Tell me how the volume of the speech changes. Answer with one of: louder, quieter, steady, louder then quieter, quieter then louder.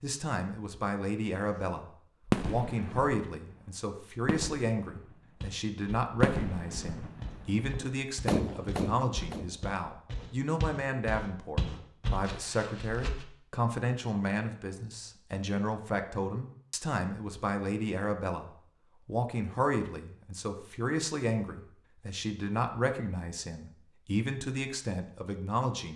steady.